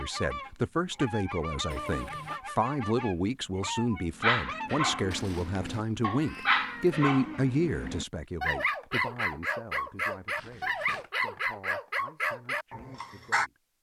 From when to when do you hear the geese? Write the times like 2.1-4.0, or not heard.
0.0-4.7.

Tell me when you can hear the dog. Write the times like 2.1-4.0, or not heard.
4.2-13.5.